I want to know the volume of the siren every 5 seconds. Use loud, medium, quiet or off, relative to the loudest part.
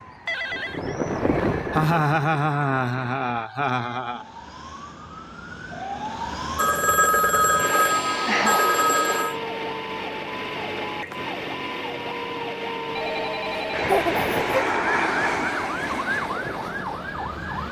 quiet, loud, loud, loud.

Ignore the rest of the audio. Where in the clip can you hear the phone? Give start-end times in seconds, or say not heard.
0.2-0.9, 6.5-9.3, 12.9-13.9.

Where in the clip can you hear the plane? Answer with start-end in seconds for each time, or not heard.
0.0-3.5, 13.7-17.6.